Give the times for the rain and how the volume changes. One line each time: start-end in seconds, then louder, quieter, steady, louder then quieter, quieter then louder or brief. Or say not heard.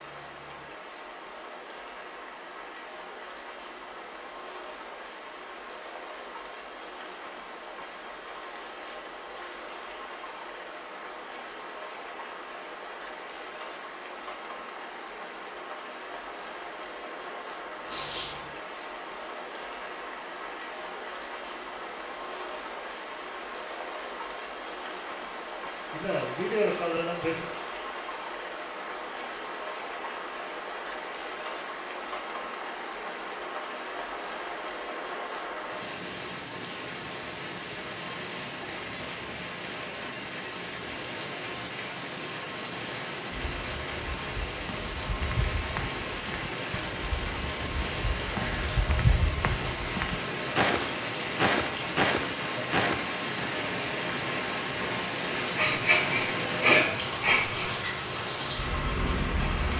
0.0-59.7 louder.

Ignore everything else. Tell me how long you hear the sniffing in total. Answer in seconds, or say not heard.
4 s.